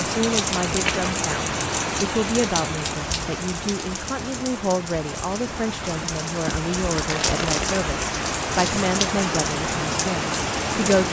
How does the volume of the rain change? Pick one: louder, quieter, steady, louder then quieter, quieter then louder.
quieter then louder.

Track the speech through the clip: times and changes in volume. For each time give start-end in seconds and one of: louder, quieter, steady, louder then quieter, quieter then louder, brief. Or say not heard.
0.0-11.0 steady.